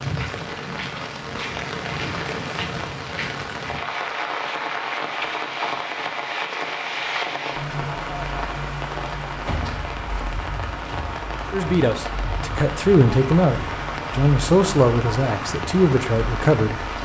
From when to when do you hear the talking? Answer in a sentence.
You can hear the talking from 11.5 to 17.0 s.